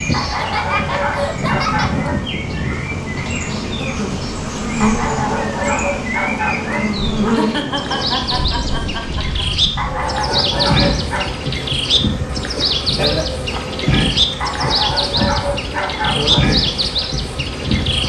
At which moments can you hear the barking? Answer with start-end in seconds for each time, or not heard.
0.1-2.1, 4.8-6.8, 9.8-11.3, 14.4-16.4.